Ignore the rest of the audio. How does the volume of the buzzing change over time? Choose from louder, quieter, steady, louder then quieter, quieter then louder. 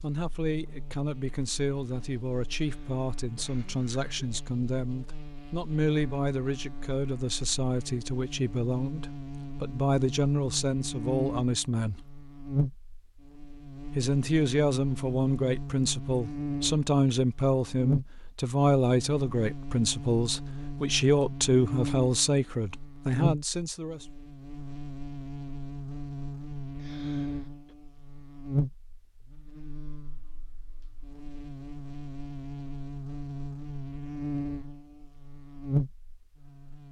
louder.